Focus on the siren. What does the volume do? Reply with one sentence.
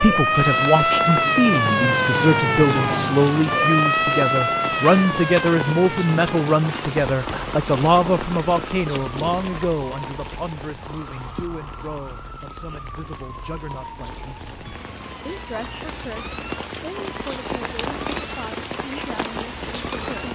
The volume of the siren goes down.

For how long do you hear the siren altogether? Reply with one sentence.
You can hear the siren for 20 seconds altogether.